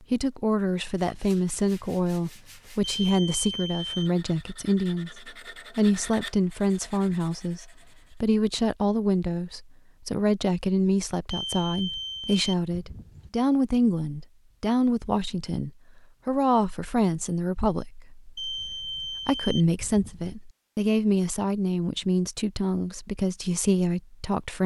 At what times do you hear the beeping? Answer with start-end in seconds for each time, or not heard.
2.9-4.1, 11.3-13.3, 18.4-20.4.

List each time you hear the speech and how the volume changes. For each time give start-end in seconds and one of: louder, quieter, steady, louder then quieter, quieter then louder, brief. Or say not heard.
0.1-24.6 steady.